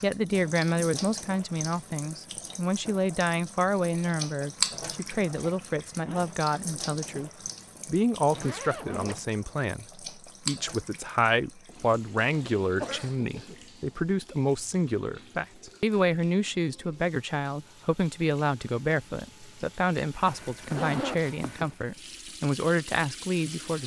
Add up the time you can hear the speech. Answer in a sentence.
The speech can be heard for 24 seconds in total.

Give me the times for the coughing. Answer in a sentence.
The coughing can be heard from 12.8 to 13.6 s.